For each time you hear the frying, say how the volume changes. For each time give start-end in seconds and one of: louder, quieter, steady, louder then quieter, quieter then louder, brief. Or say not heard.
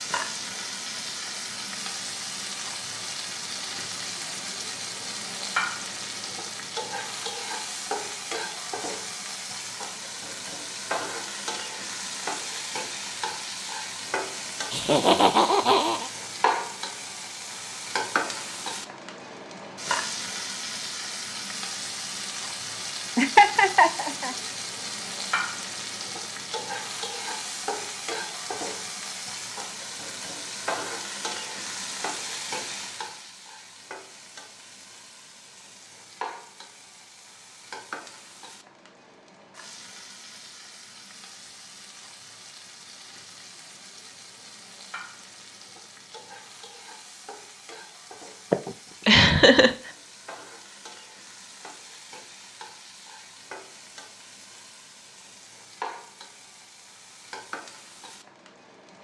0.0-58.9 quieter.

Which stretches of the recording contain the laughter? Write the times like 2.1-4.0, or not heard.
14.7-16.1, 23.1-24.4, 48.5-49.8.